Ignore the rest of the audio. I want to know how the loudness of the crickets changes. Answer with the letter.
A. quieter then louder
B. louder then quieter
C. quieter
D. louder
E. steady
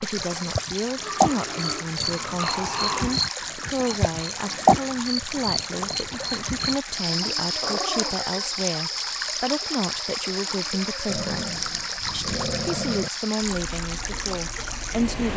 C.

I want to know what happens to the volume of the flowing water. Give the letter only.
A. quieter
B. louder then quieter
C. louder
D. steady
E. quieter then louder
D.